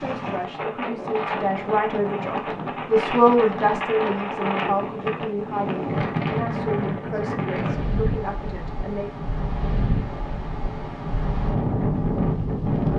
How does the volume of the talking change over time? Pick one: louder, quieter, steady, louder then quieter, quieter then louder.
louder then quieter.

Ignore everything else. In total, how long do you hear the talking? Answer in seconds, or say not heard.
9 s.